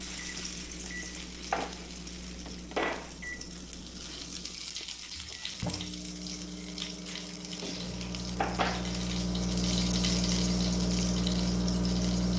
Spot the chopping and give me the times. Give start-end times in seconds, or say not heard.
not heard.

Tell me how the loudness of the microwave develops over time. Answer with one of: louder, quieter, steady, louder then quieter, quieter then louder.
louder.